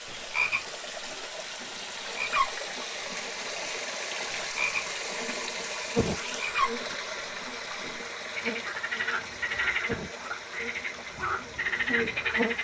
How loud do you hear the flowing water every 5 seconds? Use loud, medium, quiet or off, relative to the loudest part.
loud, loud, medium.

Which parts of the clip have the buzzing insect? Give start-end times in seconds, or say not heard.
5.2-12.5.